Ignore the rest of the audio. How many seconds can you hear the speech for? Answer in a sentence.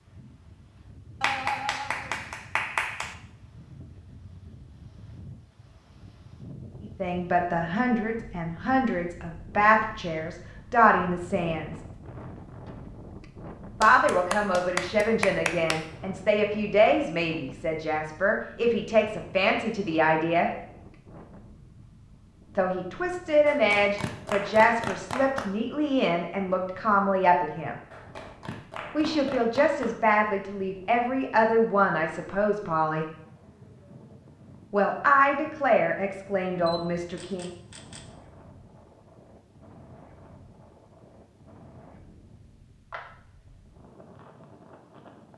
You can hear the speech for 24 seconds altogether.